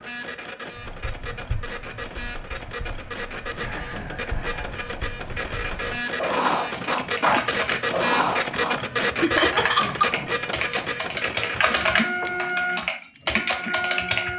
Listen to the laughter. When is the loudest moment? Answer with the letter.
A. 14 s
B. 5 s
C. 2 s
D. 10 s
D.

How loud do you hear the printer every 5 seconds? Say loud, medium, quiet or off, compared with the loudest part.
medium, loud, loud.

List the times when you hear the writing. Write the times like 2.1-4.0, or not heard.
0.8-8.8.